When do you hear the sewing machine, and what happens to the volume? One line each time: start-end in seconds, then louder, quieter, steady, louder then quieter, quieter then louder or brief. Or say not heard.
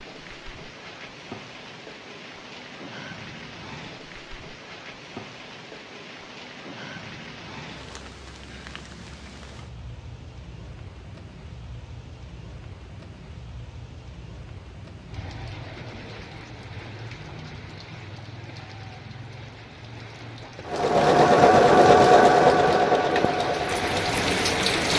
20.6-24.8 quieter.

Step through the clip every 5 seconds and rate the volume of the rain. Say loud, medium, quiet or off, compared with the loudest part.
quiet, quiet, quiet, quiet, loud.